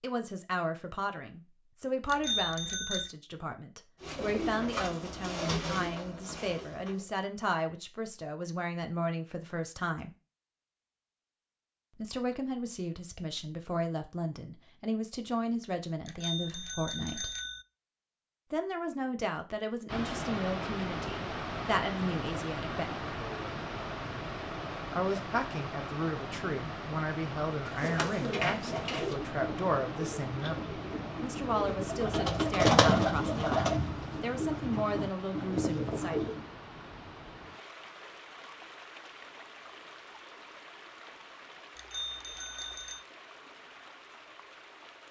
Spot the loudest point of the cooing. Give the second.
33 s.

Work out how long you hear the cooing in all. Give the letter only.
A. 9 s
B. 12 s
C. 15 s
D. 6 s
B.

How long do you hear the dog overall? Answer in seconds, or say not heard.
not heard.